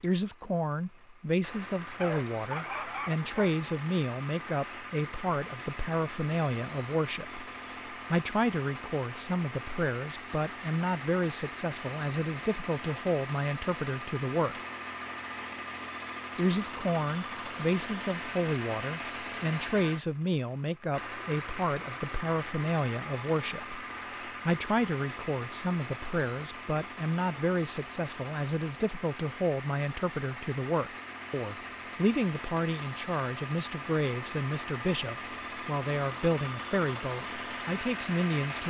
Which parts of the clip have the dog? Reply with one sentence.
The dog can be heard from 1.9 to 3.5 s.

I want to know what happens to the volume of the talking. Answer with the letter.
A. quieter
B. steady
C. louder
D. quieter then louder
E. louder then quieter
B.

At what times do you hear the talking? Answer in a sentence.
The talking can be heard from 0.0 to 14.6 s and from 16.4 to 38.6 s.